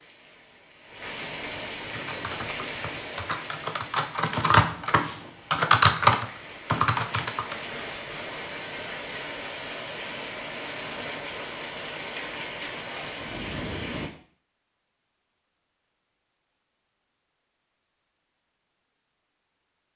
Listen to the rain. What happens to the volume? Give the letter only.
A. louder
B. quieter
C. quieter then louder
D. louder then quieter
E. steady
C.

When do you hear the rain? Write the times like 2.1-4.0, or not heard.
0.0-14.1.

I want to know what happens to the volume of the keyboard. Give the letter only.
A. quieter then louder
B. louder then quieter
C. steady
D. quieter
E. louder
B.